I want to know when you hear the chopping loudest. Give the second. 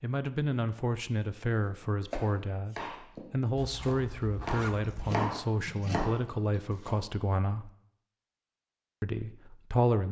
5 s.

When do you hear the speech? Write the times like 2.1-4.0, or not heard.
0.0-7.7, 9.0-10.0.